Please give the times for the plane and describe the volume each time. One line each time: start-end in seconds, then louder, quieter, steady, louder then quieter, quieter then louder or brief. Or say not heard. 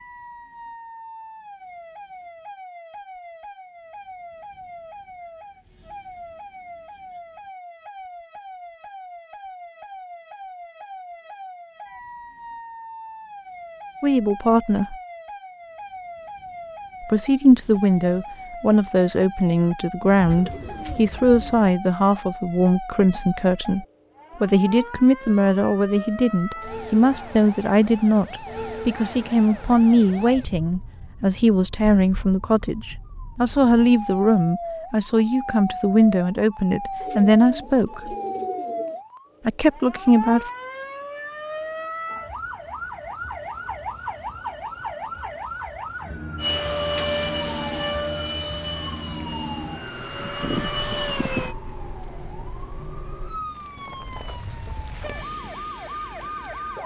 46.4-51.5 quieter then louder.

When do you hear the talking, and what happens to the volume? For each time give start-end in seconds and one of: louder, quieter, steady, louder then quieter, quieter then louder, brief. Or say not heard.
14.0-14.9 brief
17.0-38.1 steady
39.5-40.5 brief.